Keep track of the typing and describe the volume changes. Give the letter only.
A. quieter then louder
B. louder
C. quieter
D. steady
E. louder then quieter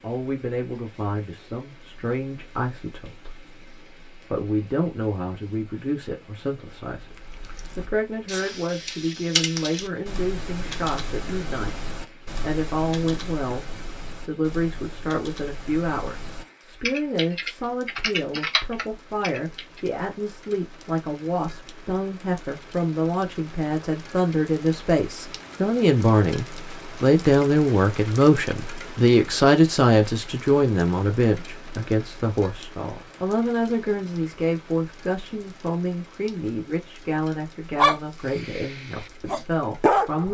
A.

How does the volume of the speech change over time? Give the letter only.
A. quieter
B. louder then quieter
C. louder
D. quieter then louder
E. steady
B.